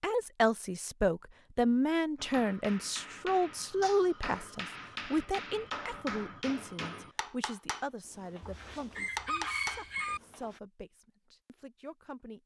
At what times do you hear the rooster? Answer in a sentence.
The rooster can be heard from 8.4 to 10.2 s.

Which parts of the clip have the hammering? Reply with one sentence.
The hammering can be heard from 2.1 to 10.6 s.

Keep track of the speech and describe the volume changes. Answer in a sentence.
The volume of the speech goes down.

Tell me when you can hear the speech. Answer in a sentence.
The speech can be heard from 0.0 to 12.4 s.